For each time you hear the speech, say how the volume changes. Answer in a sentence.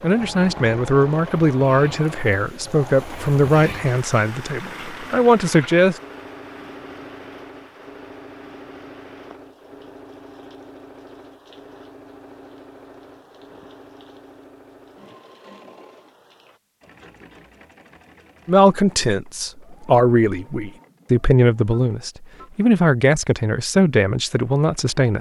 The speech can be heard from 0.0 to 6.0 s, at a steady volume; and from 18.4 to 25.1 s, at a steady volume.